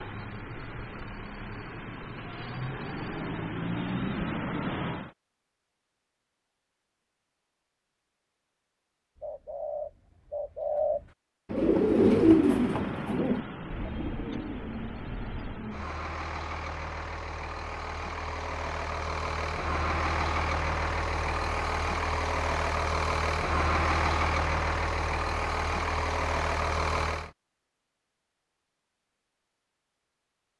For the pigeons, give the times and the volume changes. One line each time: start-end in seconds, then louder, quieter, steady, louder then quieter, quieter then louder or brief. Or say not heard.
9.2-15.6 louder then quieter.